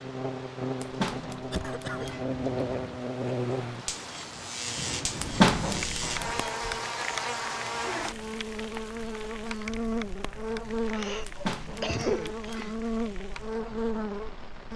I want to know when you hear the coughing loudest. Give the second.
12 s.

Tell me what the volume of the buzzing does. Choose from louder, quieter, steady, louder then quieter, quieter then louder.
steady.